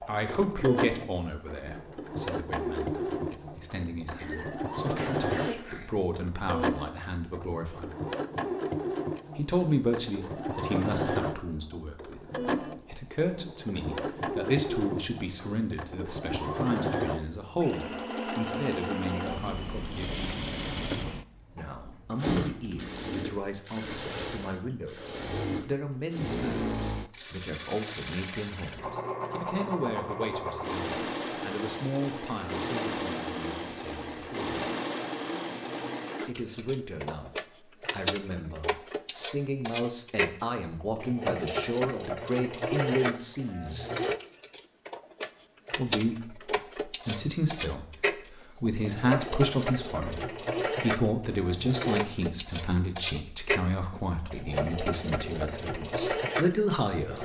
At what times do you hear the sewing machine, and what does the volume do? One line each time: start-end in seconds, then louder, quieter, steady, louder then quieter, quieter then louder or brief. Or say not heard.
0.0-57.2 steady.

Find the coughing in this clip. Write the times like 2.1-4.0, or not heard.
4.2-5.9.